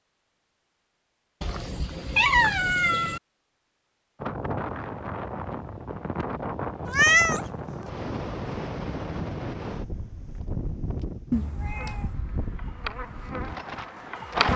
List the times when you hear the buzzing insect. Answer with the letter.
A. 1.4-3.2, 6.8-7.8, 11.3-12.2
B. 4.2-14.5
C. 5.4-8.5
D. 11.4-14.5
D.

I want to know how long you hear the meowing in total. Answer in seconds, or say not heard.
4 s.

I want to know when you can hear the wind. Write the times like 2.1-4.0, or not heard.
4.2-14.5.